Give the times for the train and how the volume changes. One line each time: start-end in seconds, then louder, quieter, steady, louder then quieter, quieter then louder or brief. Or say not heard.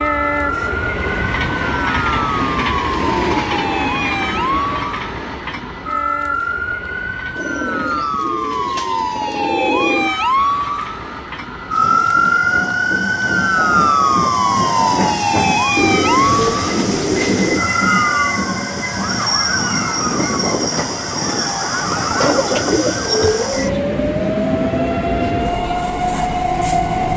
0.0-27.1 quieter then louder.